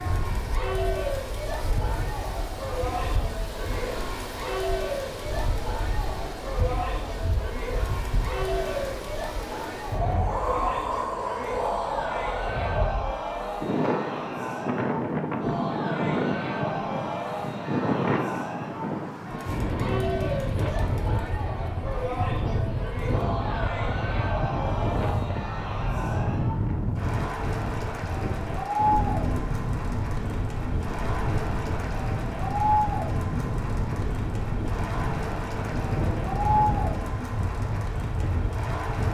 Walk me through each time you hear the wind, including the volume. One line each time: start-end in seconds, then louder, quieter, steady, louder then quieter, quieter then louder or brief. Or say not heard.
0.0-39.0 louder.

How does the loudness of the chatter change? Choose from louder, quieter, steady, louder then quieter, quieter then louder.
steady.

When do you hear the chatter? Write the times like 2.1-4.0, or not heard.
0.0-39.0.